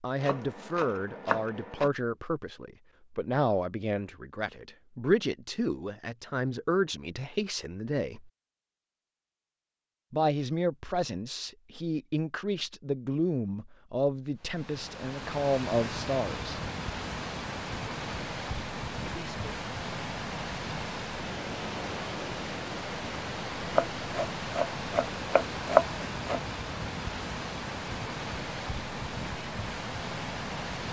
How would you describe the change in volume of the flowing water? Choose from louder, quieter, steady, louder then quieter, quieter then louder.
steady.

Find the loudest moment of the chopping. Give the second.
26 s.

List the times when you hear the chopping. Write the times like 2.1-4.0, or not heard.
0.2-1.9, 23.7-26.4.